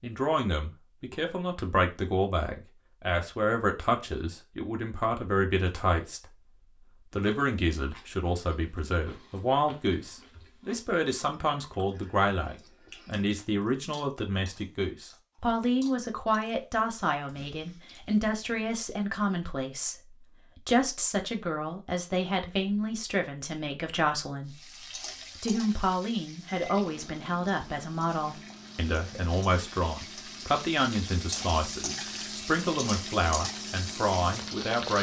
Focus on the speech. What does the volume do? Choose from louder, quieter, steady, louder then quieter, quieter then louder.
steady.